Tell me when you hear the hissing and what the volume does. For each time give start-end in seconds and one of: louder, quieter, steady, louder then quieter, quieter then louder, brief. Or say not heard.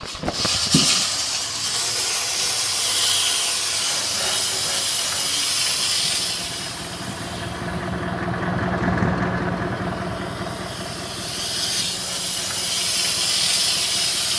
0.0-14.3 quieter then louder.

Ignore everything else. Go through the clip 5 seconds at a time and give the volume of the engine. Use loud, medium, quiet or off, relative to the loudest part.
quiet, loud, medium.